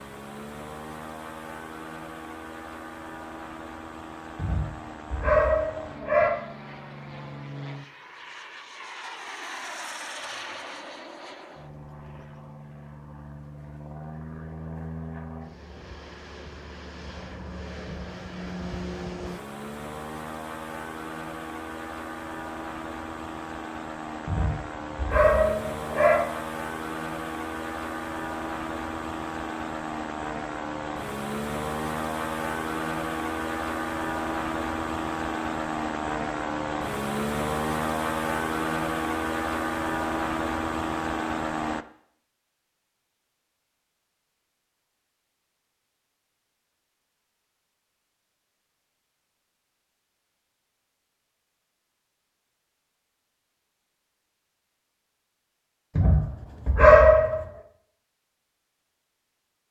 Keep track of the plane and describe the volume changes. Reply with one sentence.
The volume of the plane goes up.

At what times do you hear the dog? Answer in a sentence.
You can hear the dog from 4.3 to 6.3 s, from 24.2 to 26.2 s and from 56.0 to 57.5 s.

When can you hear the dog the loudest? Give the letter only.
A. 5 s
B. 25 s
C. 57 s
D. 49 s
C.